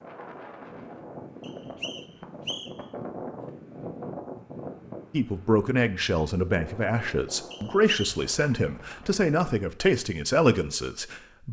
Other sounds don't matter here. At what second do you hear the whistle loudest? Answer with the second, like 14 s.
8 s.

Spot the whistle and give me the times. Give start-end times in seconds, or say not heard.
1.4-2.9, 7.5-8.2.